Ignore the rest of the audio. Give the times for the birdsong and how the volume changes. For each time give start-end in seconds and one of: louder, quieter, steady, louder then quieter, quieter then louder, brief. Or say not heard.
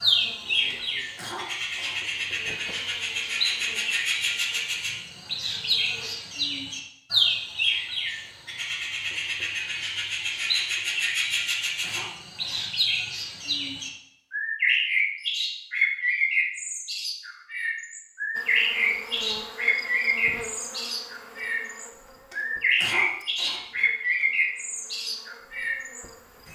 0.0-26.5 steady.